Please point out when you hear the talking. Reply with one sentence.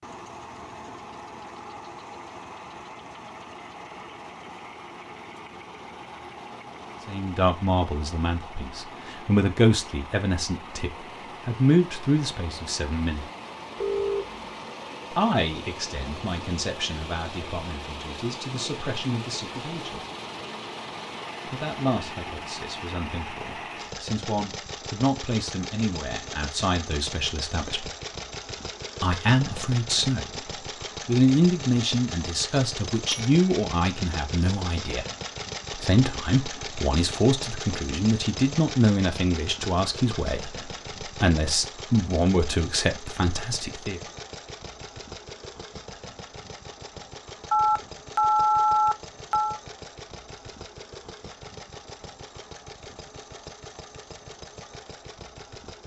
You can hear the talking from 7.0 to 13.2 s, from 15.1 to 20.0 s, from 21.4 to 27.9 s, from 29.0 to 30.4 s, from 31.1 to 35.0 s and from 35.7 to 44.0 s.